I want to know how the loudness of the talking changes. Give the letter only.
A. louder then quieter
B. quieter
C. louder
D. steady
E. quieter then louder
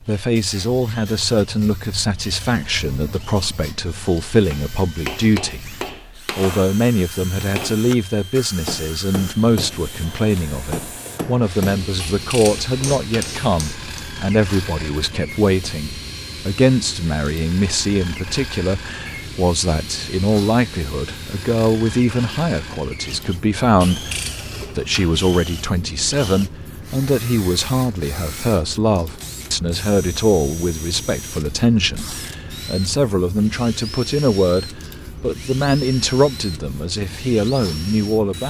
D.